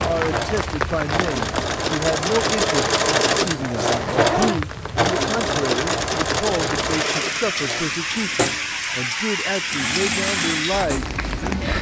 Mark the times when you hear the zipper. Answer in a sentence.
The zipper can be heard from 3.9 to 4.6 s.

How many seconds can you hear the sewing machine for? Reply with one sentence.
You can hear the sewing machine for 12 seconds altogether.